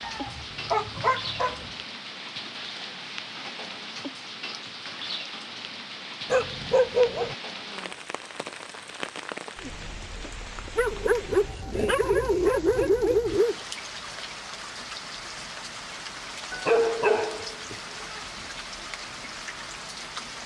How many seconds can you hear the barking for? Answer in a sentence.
The barking can be heard for 7 seconds in total.